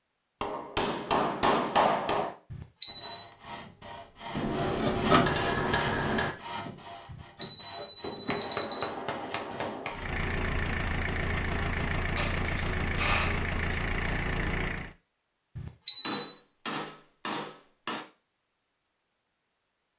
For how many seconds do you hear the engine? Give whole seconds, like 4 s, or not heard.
5 s.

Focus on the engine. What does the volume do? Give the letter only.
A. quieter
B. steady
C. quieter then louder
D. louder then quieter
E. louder
B.